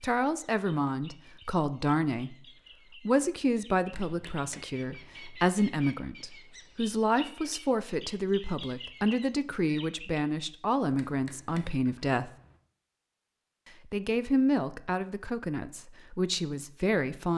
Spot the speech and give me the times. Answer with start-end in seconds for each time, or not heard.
0.0-2.4, 3.0-12.3, 13.8-17.3.